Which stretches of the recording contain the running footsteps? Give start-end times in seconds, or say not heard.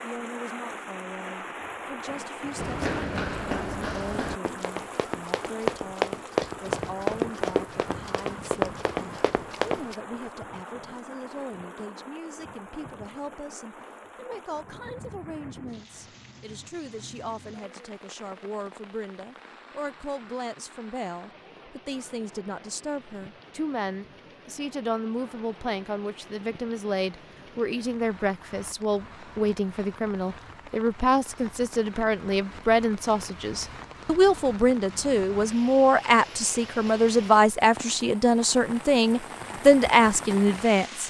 2.5-9.9.